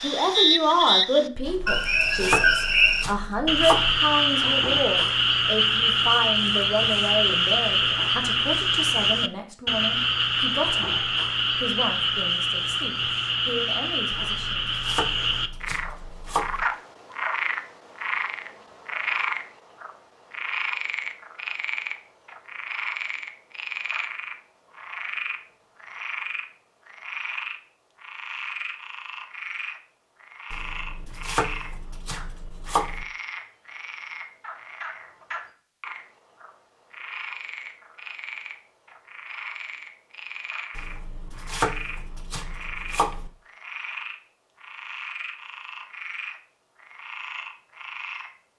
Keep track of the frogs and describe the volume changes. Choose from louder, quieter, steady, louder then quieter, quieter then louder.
quieter.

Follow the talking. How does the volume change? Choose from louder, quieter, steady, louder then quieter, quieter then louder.
quieter.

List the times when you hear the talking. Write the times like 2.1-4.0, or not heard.
0.0-14.7.